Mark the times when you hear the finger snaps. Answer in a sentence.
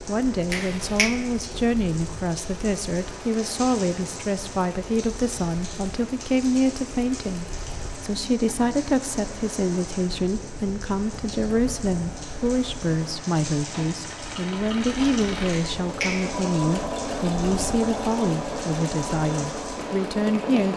You can hear the finger snaps from 0.5 to 1.1 s and from 15.5 to 16.4 s.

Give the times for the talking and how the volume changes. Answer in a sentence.
You can hear the talking from 0.0 to 20.7 s, at a steady volume.